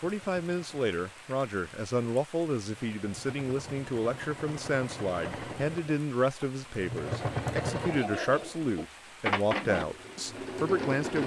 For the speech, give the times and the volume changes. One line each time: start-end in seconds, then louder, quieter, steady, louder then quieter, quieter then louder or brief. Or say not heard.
0.0-11.2 steady.